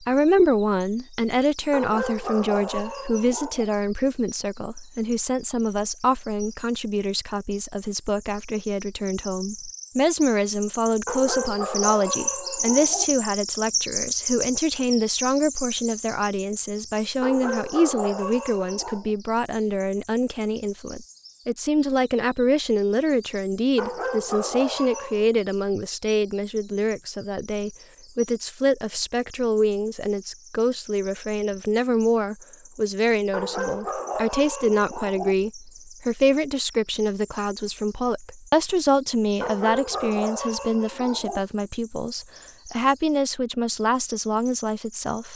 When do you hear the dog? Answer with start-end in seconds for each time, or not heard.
1.7-3.7, 11.1-13.1, 17.2-19.1, 23.8-25.2, 33.3-35.4, 39.4-41.4.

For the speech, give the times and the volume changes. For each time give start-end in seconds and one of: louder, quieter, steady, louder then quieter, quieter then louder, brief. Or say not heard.
0.0-45.3 steady.